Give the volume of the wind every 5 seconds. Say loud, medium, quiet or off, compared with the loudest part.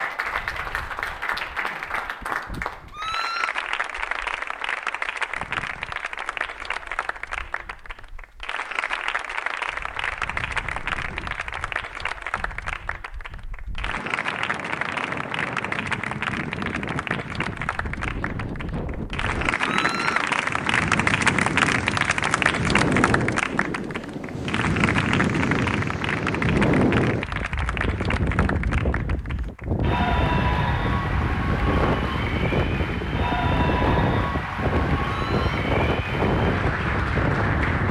quiet, quiet, quiet, medium, loud, loud, loud, loud.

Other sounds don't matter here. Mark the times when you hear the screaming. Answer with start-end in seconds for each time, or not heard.
2.9-3.5, 19.6-20.3, 35.0-35.6.